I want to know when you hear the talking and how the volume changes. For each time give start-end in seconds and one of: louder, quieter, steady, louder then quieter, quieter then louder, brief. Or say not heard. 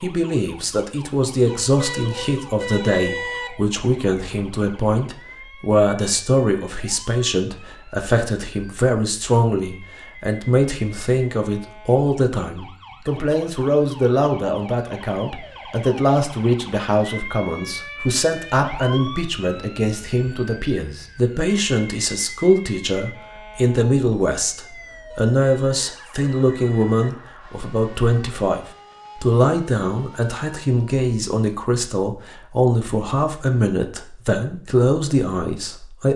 0.0-36.1 steady.